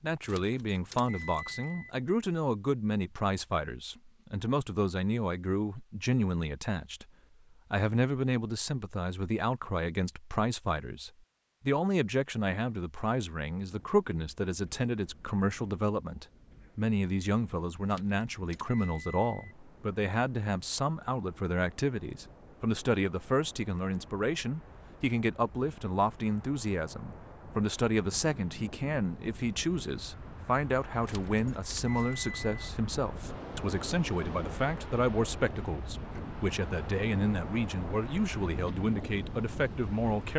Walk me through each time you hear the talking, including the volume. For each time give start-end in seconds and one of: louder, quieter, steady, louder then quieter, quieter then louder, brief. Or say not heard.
0.0-7.0 steady
7.7-40.3 steady.